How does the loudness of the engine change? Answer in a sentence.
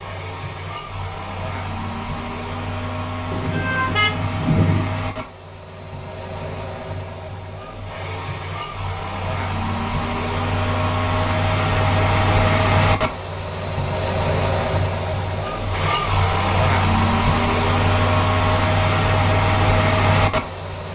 The loudness of the engine goes up.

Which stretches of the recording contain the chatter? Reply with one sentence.
You can't hear the chatter here.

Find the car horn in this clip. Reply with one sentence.
The car horn can be heard from 3.3 to 4.9 s.